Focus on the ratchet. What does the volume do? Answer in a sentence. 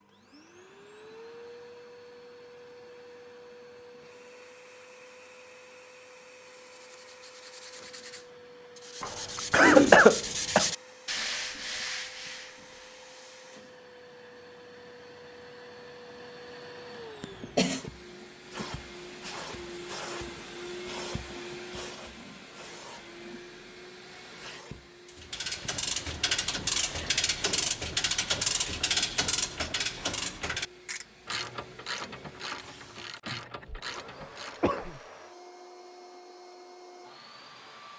The loudness of the ratchet goes down.